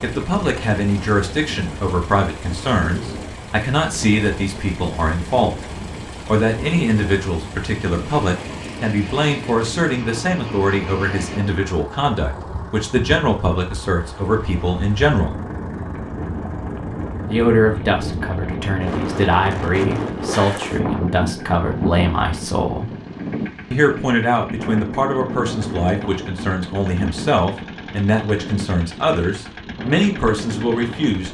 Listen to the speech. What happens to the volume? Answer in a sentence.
The loudness of the speech stays about the same.